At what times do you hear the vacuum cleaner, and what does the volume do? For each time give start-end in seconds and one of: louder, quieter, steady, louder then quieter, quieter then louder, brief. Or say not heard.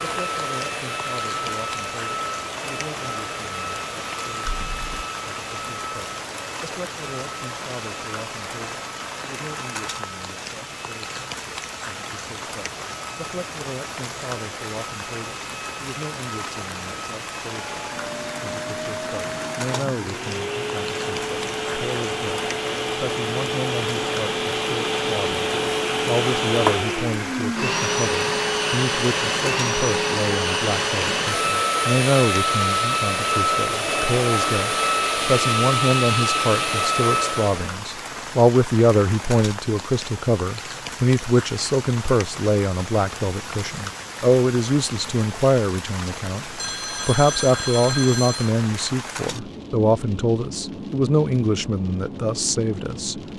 0.0-37.8 quieter then louder.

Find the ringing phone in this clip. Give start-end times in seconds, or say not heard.
4.5-5.0, 46.5-48.5.